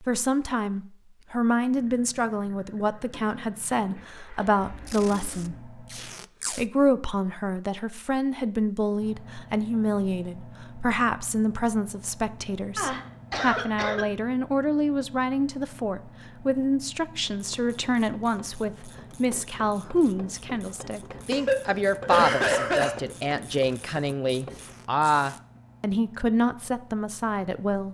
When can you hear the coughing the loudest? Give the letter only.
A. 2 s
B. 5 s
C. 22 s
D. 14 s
C.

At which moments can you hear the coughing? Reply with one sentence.
You can hear the coughing from 3.1 to 5.3 s, from 12.8 to 14.1 s and from 21.3 to 22.9 s.